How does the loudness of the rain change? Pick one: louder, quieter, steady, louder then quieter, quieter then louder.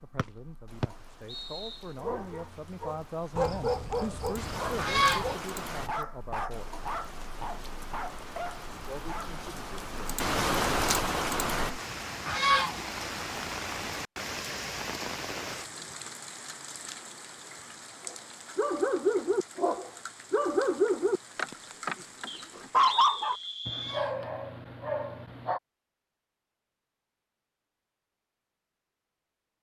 louder then quieter.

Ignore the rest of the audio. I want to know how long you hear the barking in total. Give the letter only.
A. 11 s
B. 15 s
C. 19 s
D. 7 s
B.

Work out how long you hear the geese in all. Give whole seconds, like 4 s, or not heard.
2 s.